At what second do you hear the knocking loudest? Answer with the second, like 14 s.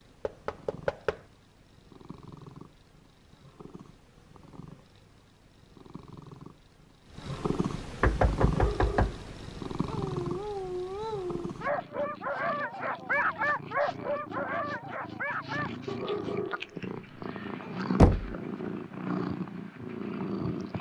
18 s.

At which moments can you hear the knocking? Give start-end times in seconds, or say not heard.
0.2-1.2, 8.0-9.2, 17.9-18.4.